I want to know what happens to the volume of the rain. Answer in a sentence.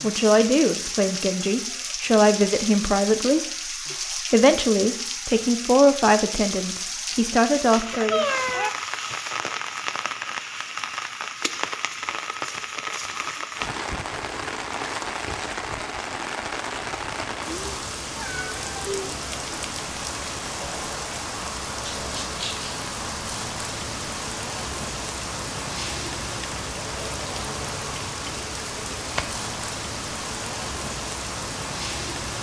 The loudness of the rain stays about the same.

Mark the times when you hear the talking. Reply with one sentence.
You can hear the talking from 0.0 to 8.2 s.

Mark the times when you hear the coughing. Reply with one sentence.
The coughing can't be heard in this clip.